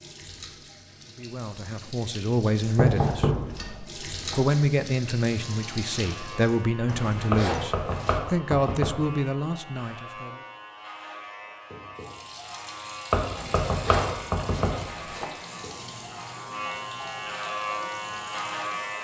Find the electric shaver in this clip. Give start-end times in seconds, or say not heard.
5.3-18.9.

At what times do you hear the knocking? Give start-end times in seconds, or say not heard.
2.8-3.6, 7.3-8.9, 13.1-14.8.